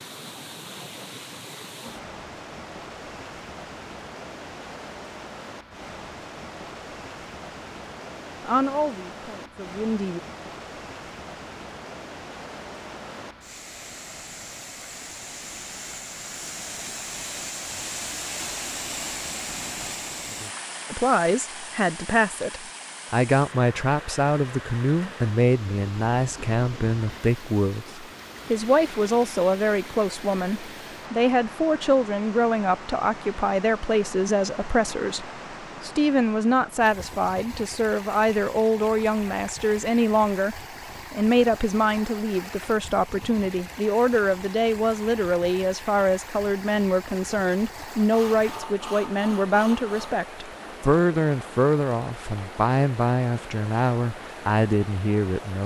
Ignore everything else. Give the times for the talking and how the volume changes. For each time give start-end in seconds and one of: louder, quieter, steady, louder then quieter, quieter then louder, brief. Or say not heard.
8.4-10.2 brief
20.9-55.6 steady.